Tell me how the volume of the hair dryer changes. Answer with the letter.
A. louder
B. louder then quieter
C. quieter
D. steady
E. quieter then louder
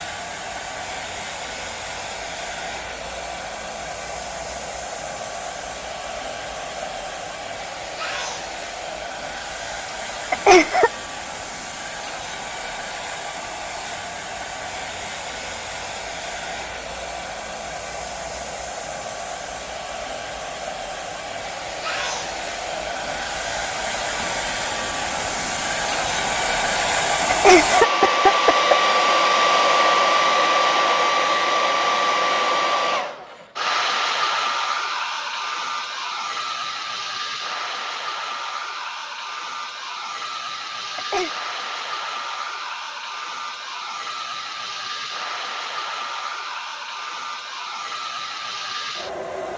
B.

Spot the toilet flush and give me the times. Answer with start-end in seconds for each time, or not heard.
not heard.